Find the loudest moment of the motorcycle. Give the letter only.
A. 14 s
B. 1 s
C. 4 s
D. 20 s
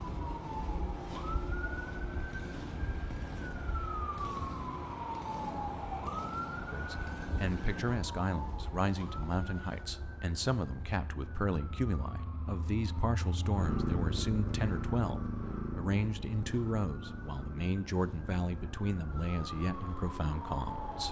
A.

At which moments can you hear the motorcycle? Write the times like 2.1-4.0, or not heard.
0.0-21.0.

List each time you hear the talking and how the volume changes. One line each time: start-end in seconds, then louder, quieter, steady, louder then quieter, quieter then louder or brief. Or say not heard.
6.7-21.0 steady.